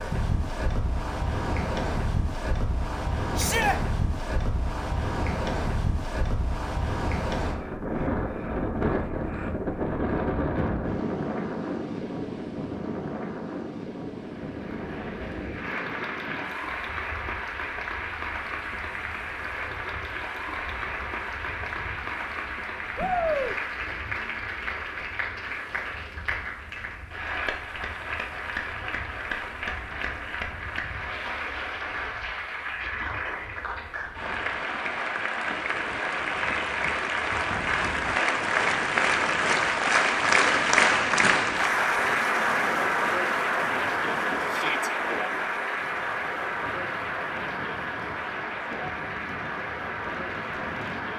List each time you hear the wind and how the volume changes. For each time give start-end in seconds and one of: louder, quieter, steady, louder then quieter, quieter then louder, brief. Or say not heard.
0.0-51.1 quieter then louder.